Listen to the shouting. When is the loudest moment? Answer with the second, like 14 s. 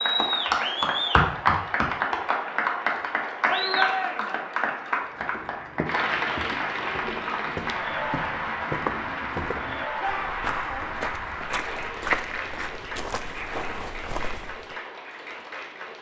4 s.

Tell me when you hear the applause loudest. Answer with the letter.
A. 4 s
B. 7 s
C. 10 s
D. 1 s
D.